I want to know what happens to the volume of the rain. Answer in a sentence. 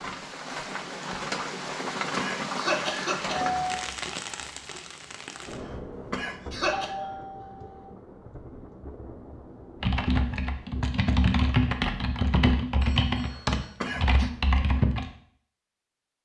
The loudness of the rain goes down.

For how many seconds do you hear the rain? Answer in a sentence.
You can hear the rain for 11 seconds altogether.